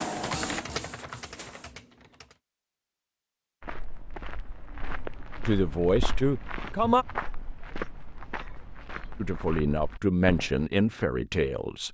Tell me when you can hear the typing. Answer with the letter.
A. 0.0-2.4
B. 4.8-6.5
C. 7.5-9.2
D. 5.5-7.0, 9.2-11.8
A.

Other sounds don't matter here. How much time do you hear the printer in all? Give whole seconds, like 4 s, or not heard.
2 s.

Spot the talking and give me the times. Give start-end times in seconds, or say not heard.
5.5-7.0, 9.2-11.8.